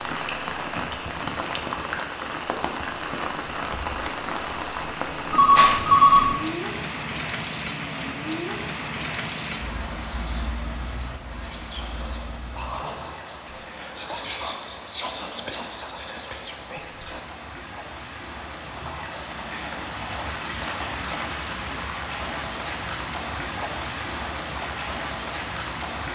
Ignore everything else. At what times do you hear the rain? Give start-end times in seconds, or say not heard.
0.0-26.0.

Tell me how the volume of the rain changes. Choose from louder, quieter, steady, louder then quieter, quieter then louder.
quieter then louder.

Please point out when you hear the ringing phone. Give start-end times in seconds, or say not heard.
5.3-6.3.